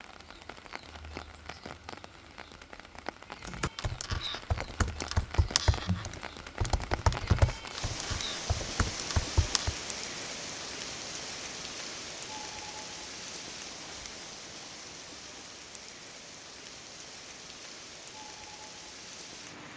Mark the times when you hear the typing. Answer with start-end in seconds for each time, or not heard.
3.4-9.8.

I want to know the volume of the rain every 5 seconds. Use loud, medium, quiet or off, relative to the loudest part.
medium, loud, loud, medium.